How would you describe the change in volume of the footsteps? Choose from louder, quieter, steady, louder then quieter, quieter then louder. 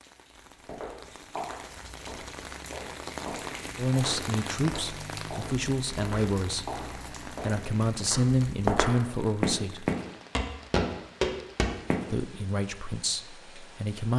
louder.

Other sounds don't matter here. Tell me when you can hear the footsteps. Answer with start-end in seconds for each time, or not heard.
0.3-12.1.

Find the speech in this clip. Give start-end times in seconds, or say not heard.
3.8-9.8, 12.1-14.1.